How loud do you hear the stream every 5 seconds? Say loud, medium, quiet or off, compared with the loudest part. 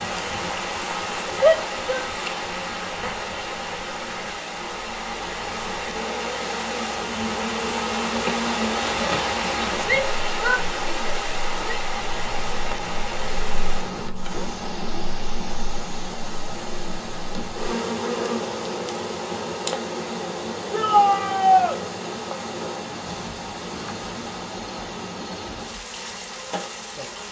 loud, loud, loud, medium, medium, medium.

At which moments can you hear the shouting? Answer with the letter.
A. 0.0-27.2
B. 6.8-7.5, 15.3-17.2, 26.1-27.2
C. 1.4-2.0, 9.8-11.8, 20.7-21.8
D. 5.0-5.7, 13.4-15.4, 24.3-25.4
C.